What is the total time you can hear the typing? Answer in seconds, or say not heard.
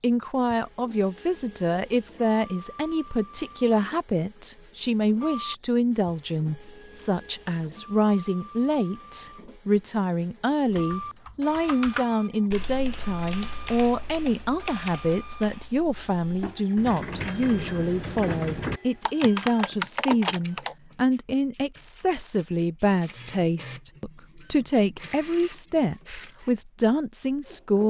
10 s.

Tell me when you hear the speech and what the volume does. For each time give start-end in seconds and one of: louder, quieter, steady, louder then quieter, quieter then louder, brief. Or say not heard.
0.0-27.8 steady.